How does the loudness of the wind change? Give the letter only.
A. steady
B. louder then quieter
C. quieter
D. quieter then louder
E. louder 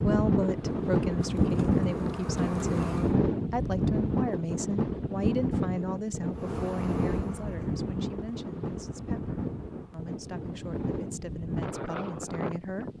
C.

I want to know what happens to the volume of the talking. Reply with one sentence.
The volume of the talking goes down.